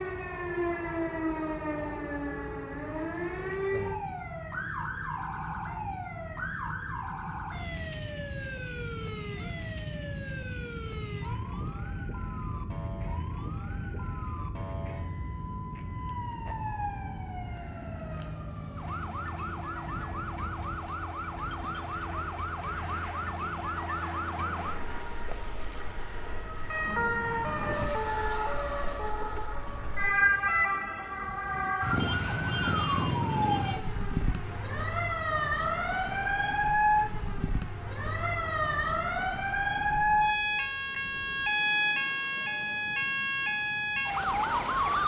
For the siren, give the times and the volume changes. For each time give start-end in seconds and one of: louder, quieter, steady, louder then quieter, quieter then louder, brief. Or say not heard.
0.0-45.0 quieter then louder.